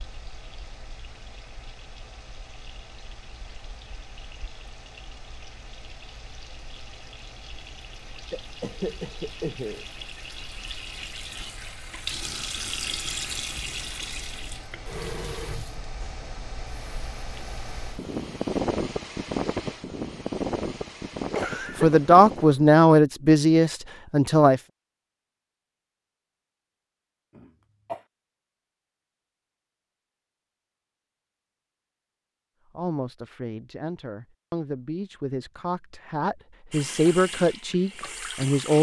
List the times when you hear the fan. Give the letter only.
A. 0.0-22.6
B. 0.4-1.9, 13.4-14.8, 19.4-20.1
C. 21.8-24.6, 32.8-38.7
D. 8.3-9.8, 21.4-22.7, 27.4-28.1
A.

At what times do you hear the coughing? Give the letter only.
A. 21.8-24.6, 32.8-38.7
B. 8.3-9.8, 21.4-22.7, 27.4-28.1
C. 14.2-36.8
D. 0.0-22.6
B.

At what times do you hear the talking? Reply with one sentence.
You can hear the talking from 21.8 to 24.6 s and from 32.8 to 38.7 s.